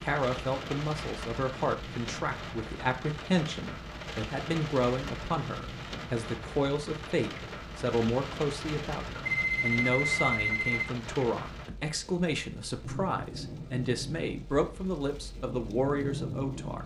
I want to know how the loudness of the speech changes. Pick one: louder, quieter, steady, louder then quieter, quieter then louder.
steady.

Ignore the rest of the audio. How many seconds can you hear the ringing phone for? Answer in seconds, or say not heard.
2 s.